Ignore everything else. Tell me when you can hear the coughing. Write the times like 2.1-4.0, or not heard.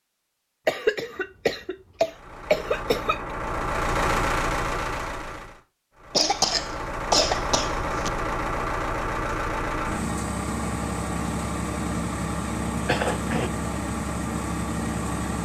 0.7-3.4, 6.1-8.1, 12.8-13.5.